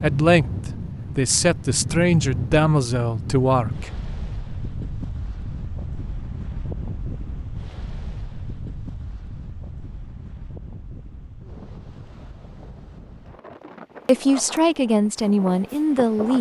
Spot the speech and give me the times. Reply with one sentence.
The speech can be heard from 0.0 to 3.9 s and from 14.1 to 16.3 s.